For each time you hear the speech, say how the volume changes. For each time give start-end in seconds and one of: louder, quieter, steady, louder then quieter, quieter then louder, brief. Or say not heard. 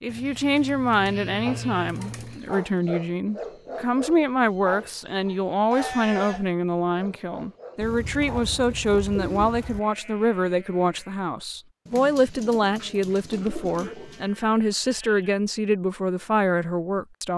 0.0-17.3 steady.